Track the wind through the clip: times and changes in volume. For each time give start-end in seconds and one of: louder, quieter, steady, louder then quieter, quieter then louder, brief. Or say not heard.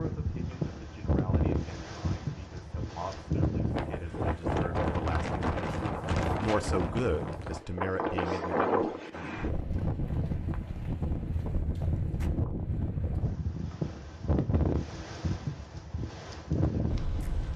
0.0-17.5 steady.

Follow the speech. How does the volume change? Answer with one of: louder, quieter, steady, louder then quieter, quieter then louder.
louder.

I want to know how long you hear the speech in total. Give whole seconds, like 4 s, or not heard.
9 s.